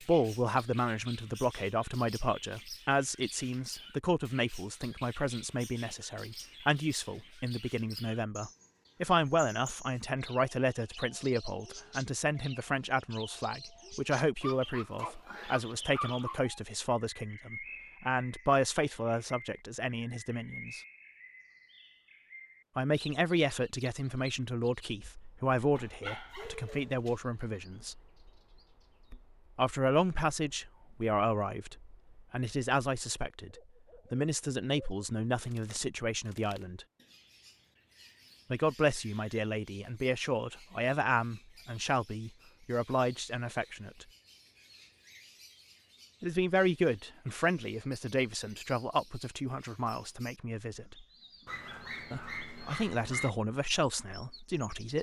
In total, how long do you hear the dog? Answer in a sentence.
The dog can be heard for 5 seconds in total.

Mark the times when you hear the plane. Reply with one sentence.
You can't hear the plane here.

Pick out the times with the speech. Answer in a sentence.
You can hear the speech from 0.1 to 20.8 s, from 22.8 to 28.0 s, from 29.6 to 36.9 s, from 38.5 to 44.0 s, from 46.2 to 51.0 s and from 52.1 to 54.9 s.